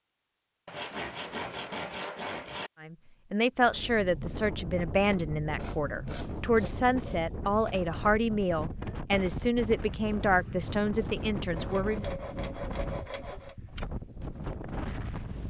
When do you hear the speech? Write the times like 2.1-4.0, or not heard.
2.8-12.1.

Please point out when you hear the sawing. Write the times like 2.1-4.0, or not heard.
0.7-2.7, 5.5-7.9, 11.6-13.6.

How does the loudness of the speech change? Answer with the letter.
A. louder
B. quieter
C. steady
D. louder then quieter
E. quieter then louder
C.